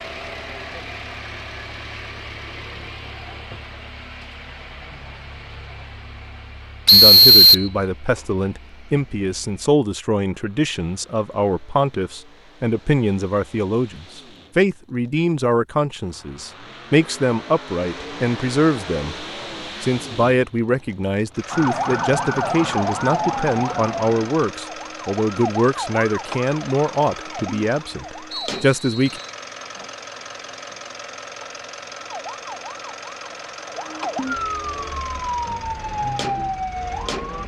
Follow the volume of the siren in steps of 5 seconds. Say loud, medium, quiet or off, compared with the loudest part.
off, off, off, off, loud, medium, medium, loud.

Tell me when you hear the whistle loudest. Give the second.
7 s.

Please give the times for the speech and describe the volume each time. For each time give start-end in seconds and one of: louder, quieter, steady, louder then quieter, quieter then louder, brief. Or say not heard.
6.9-29.2 steady.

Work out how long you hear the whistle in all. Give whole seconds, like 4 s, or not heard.
2 s.